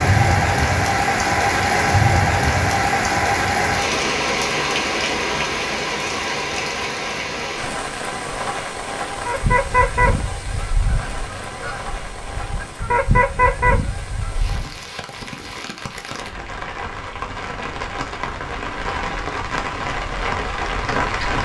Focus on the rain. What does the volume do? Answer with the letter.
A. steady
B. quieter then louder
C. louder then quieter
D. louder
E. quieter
B.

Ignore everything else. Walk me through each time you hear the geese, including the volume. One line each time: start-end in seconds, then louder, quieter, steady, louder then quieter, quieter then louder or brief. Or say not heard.
9.2-14.8 quieter then louder.